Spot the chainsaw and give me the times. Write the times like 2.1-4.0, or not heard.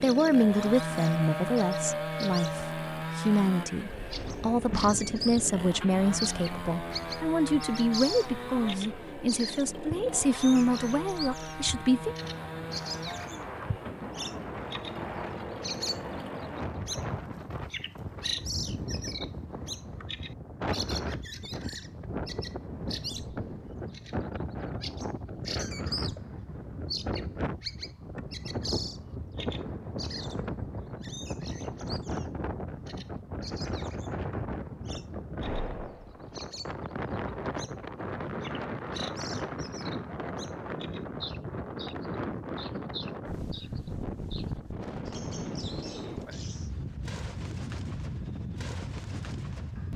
0.0-16.6.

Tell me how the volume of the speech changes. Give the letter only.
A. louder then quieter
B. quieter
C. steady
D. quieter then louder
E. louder
C.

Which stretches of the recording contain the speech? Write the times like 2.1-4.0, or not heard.
0.0-12.2.